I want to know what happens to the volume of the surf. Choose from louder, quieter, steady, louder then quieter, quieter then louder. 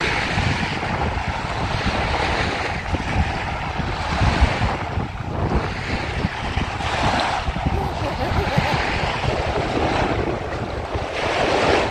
steady.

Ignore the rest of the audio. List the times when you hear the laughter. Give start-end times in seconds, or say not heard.
7.7-8.8.